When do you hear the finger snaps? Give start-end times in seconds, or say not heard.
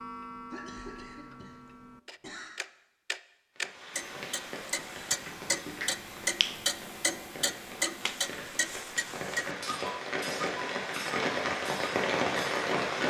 5.2-6.6.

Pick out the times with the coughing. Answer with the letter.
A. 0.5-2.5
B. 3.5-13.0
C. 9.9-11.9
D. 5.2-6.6
A.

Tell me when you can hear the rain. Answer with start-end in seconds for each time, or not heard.
3.5-13.0.